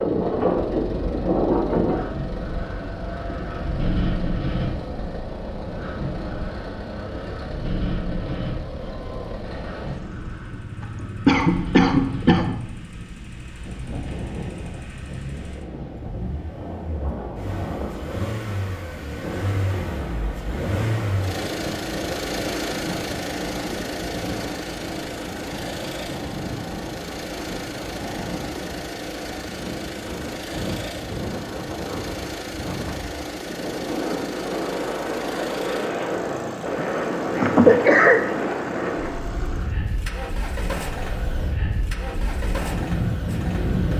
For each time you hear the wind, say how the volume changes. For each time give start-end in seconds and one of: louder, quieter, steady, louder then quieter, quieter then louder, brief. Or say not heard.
0.0-43.9 quieter then louder.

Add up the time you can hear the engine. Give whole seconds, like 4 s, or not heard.
44 s.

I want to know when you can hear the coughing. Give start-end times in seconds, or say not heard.
10.8-12.6, 36.8-38.2.